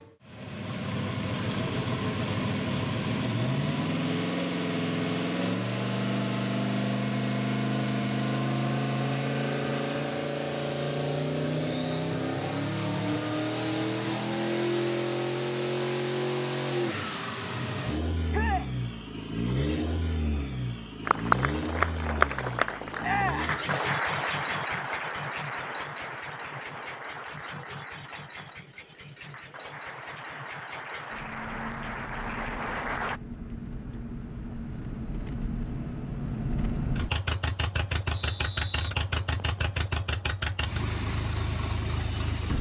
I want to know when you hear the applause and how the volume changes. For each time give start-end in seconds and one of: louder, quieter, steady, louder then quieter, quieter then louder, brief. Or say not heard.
21.1-33.2 quieter then louder.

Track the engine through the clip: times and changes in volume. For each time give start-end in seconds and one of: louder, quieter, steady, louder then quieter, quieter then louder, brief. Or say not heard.
0.0-42.5 quieter then louder.